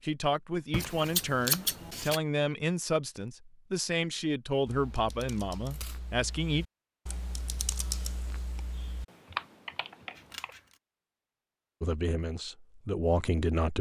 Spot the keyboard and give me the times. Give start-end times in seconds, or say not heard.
4.7-10.6.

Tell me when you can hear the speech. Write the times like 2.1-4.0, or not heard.
0.0-6.7, 11.8-13.7.